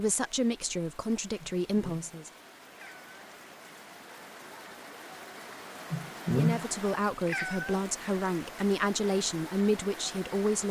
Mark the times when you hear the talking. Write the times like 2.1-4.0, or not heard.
0.0-2.3, 6.3-10.6.